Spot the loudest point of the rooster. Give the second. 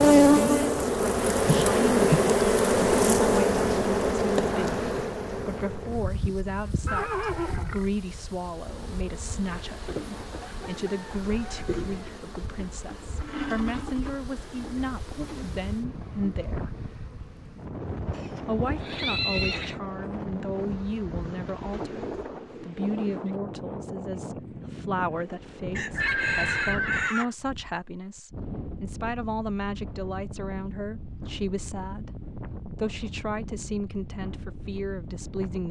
26 s.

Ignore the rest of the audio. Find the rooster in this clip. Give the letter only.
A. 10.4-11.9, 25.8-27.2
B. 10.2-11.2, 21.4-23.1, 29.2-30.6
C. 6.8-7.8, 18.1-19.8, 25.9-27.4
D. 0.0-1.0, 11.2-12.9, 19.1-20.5
A.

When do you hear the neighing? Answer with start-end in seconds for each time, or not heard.
6.8-7.8, 18.1-19.8, 25.9-27.4.